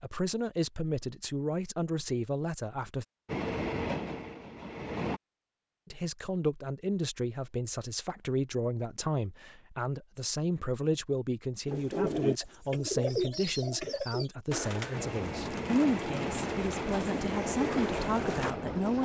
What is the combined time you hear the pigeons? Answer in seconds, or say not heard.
7 s.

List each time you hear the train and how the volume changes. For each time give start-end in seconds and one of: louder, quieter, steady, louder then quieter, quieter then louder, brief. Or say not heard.
3.2-5.2 brief
14.9-19.0 steady.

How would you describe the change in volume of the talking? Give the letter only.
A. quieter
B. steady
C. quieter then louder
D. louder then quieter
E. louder
B.